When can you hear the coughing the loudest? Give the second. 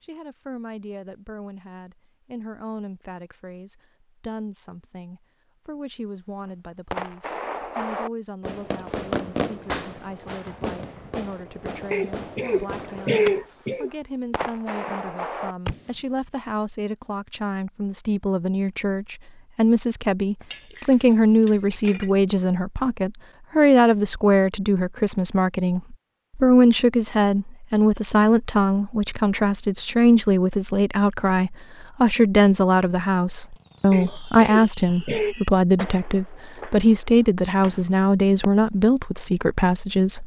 13 s.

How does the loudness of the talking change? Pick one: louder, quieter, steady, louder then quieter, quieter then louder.
louder.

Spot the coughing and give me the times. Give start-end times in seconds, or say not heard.
11.9-13.9, 33.9-35.4.